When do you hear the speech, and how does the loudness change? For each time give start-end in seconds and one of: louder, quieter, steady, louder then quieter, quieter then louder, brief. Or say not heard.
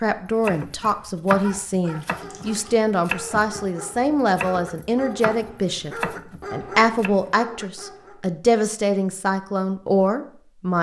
0.0-10.7 steady.